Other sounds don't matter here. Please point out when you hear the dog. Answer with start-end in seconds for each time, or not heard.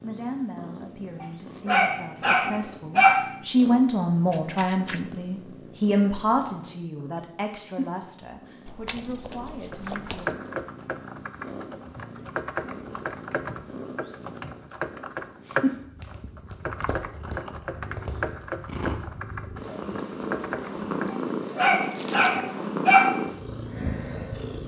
1.2-3.2, 21.1-23.1.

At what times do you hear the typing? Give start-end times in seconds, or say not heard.
9.7-21.2.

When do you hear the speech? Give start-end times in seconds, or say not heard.
0.0-10.4.